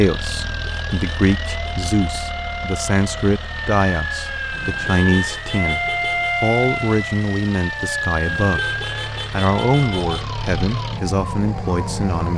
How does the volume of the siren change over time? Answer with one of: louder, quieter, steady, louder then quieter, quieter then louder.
louder then quieter.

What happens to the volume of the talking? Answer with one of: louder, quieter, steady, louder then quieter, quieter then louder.
steady.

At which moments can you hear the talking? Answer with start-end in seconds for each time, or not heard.
0.0-12.3.